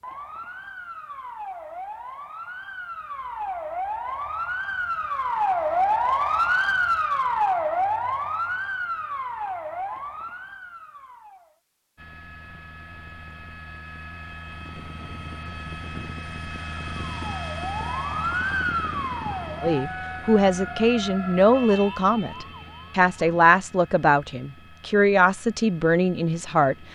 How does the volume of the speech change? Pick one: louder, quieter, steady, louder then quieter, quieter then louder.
steady.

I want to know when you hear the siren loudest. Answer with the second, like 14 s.
6 s.